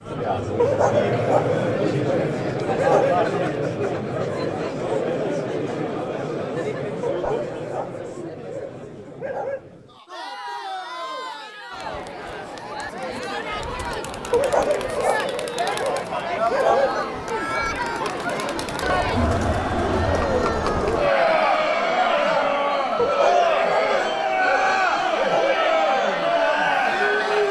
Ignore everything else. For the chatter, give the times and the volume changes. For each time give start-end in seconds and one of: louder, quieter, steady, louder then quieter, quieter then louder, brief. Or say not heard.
0.0-27.4 quieter then louder.